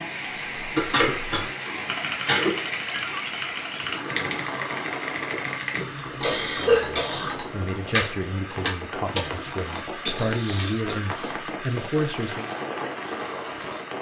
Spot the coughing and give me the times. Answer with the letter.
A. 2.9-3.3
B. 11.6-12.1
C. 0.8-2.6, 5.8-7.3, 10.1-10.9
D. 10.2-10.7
C.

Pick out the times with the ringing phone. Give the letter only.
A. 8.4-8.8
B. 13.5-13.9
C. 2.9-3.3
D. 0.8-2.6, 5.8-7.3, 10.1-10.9
C.